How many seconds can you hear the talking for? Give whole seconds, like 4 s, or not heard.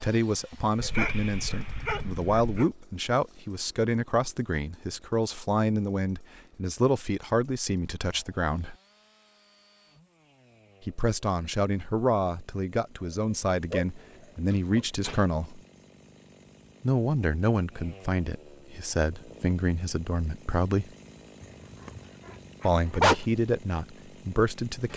20 s.